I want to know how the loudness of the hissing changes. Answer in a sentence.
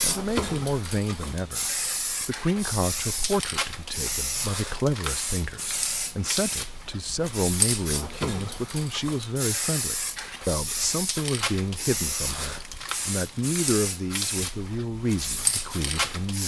The volume of the hissing stays about the same.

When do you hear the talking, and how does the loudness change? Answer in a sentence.
The talking can be heard from 0.0 to 16.4 s, at a steady volume.